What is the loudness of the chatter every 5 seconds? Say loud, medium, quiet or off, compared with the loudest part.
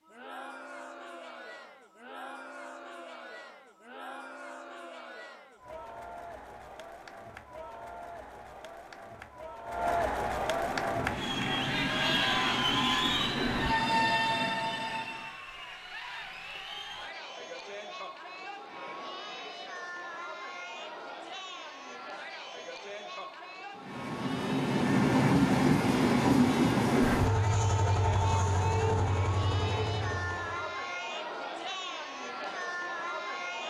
quiet, medium, loud, medium, medium, medium, medium.